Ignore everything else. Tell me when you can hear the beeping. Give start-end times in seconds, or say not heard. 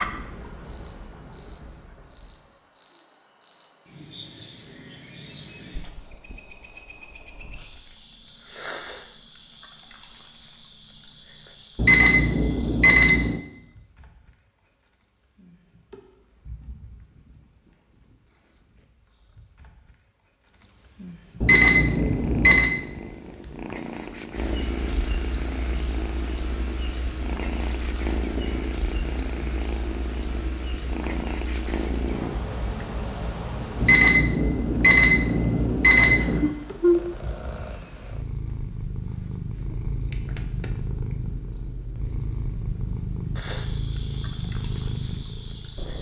11.8-13.4, 21.4-22.8, 33.8-36.5.